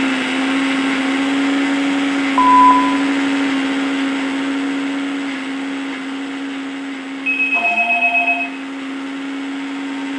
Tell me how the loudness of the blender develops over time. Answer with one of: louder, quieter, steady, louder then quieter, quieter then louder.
quieter.